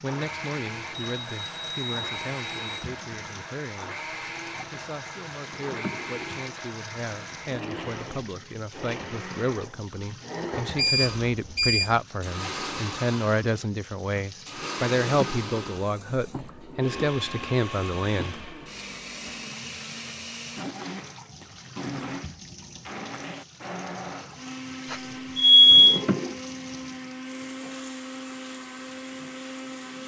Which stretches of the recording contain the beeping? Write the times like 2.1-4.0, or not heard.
0.9-2.9, 10.8-11.9, 24.9-26.0.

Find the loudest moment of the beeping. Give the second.
26 s.